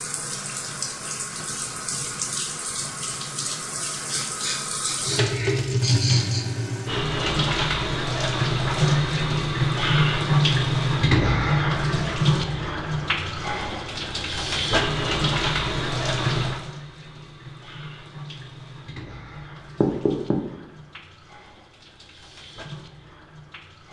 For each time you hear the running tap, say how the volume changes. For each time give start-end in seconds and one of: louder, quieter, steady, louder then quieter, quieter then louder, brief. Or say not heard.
0.0-23.8 louder then quieter.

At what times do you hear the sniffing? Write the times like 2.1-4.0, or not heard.
4.0-6.5.